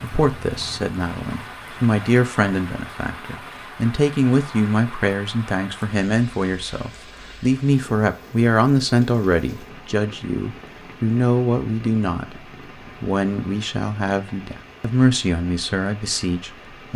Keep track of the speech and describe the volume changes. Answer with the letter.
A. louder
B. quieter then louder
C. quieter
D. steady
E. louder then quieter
D.